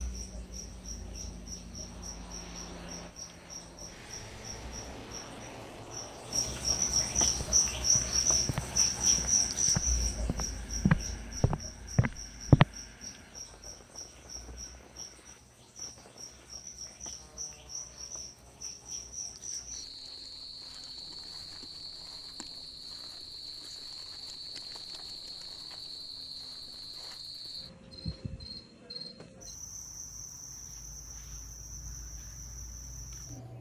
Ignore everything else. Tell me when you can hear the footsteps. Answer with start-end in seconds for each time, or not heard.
7.3-12.7.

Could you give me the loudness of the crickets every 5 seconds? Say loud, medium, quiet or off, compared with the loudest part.
quiet, loud, quiet, quiet, quiet, quiet, quiet.